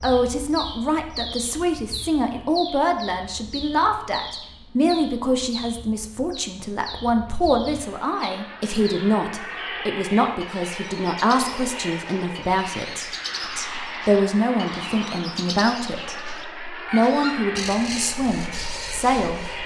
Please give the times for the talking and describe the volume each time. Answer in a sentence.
The talking can be heard from 0.0 to 19.6 s, at a steady volume.